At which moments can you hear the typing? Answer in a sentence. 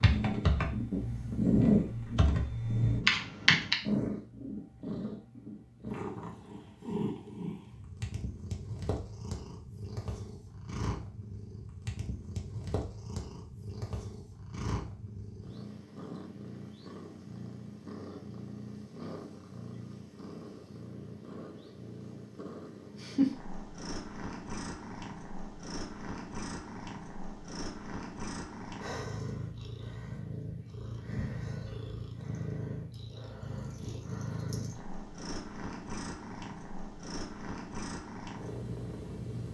The typing can be heard from 0.0 to 3.8 s.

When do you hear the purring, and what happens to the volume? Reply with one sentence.
The purring can be heard from 0.0 to 39.4 s, getting quieter.